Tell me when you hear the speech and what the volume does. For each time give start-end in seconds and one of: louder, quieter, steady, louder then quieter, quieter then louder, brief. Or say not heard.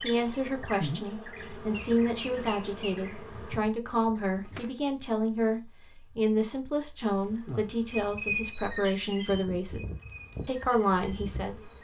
0.0-9.8 steady
10.4-11.7 brief.